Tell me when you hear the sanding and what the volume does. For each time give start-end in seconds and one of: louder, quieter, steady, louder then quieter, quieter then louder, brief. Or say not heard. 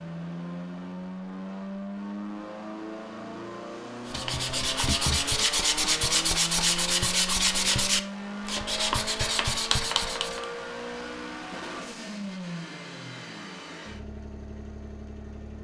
4.0-10.5 steady.